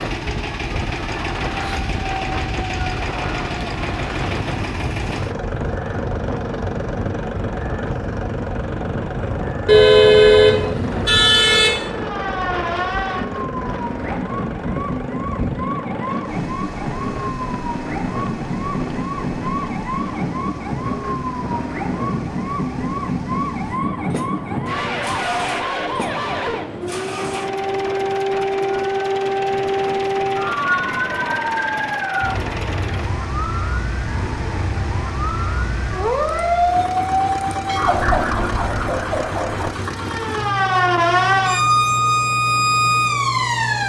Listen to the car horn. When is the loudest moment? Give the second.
10 s.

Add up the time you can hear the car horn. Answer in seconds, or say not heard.
2 s.